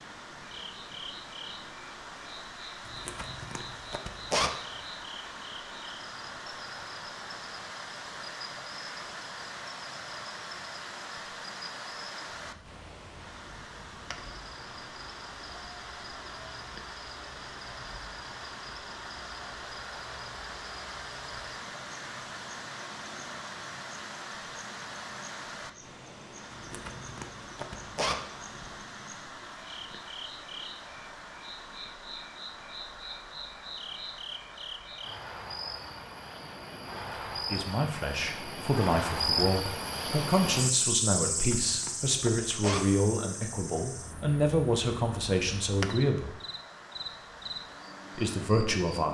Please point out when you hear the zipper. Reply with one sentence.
The zipper can be heard from 2.9 to 4.5 s, from 26.5 to 28.7 s and from 41.3 to 42.8 s.